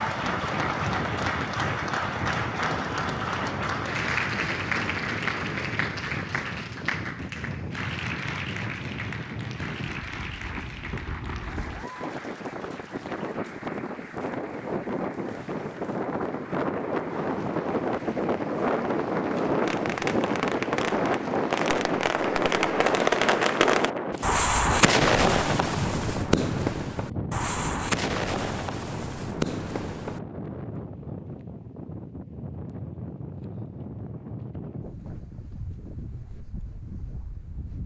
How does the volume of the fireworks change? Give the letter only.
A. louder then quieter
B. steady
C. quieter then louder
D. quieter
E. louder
A.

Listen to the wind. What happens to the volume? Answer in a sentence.
The loudness of the wind goes up, then down.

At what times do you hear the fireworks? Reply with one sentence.
You can hear the fireworks from 19.6 to 30.2 s.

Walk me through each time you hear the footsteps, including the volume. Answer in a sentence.
You can't hear the footsteps here.